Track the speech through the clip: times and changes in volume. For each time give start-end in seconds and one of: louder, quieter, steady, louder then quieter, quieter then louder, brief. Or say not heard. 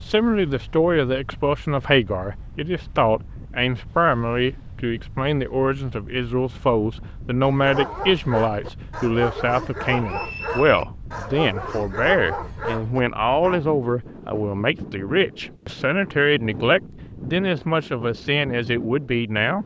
0.0-19.6 steady.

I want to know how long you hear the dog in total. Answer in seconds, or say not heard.
6 s.